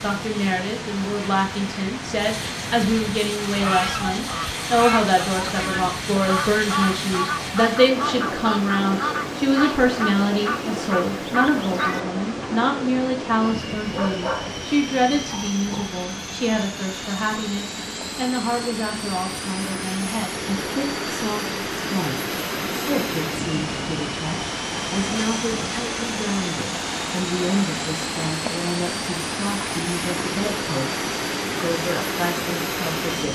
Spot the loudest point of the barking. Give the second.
14 s.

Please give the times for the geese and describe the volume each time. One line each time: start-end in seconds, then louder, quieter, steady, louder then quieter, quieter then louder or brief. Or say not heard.
3.4-12.5 steady.